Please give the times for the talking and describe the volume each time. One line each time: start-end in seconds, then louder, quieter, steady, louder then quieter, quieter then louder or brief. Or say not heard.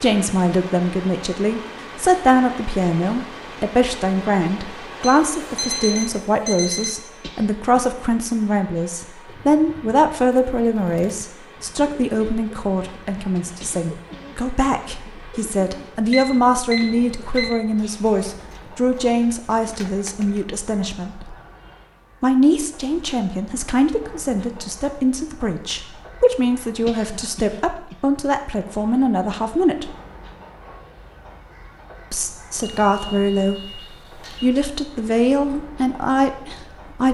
0.0-21.4 steady
22.2-29.9 steady
32.1-33.8 brief
34.4-37.0 brief.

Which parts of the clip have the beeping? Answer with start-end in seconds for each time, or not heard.
5.0-6.9, 16.1-17.6, 32.6-34.5.